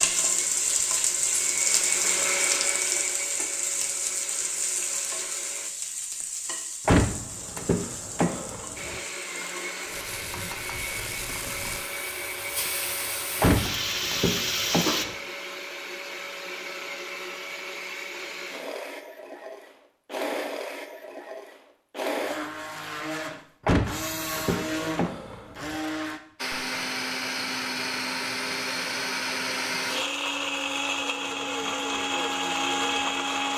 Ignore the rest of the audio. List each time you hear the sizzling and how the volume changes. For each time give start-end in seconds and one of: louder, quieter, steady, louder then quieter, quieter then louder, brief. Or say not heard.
0.0-15.1 quieter then louder.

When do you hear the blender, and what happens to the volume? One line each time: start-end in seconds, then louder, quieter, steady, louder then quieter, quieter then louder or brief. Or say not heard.
0.0-5.7 louder then quieter
8.8-33.5 louder.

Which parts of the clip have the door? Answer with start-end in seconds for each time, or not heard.
6.8-8.9, 13.4-15.2, 23.6-25.8.